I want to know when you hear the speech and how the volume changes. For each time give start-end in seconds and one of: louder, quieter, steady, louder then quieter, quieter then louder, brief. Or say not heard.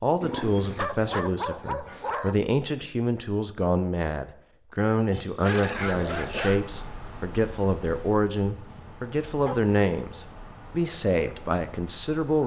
0.0-12.4 steady.